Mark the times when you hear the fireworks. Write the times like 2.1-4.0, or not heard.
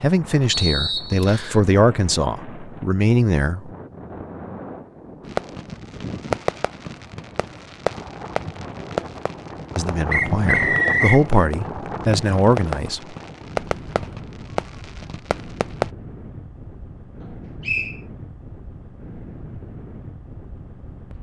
5.2-15.9.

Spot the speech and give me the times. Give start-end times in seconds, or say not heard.
0.0-3.7, 9.8-13.2.